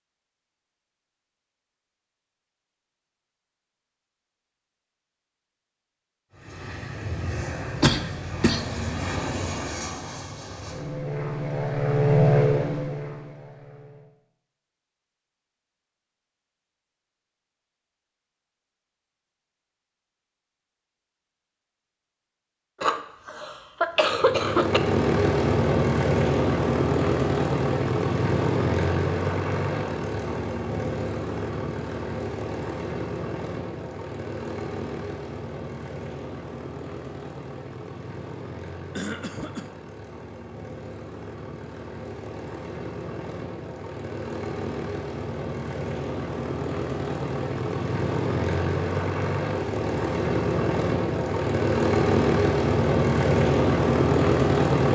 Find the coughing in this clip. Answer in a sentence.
You can hear the coughing from 7.8 to 8.7 s, from 22.8 to 24.8 s and from 39.0 to 39.7 s.